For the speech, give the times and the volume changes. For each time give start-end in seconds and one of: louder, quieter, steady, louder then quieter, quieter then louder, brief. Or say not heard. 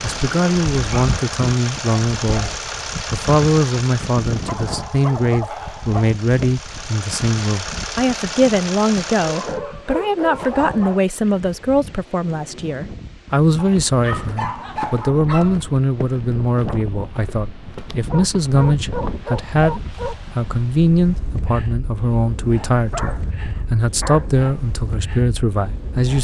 0.0-26.1 steady.